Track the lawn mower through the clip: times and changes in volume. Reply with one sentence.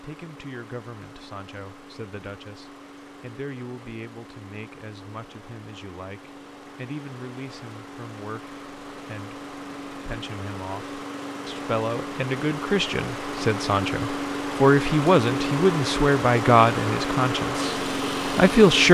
You can hear the lawn mower from 0.0 to 18.8 s, getting louder.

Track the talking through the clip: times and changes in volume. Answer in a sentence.
You can hear the talking from 0.0 to 18.8 s, getting louder.